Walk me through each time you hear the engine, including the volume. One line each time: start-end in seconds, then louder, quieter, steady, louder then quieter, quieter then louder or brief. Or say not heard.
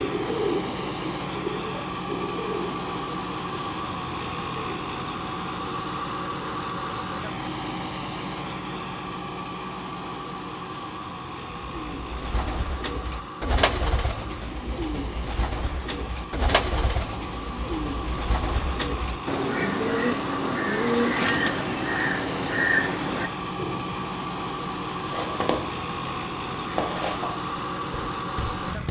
0.0-28.8 quieter then louder.